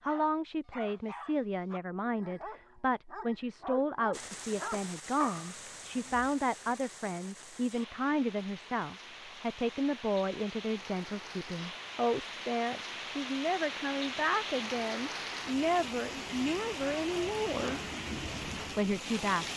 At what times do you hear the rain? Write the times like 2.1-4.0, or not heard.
4.1-19.5.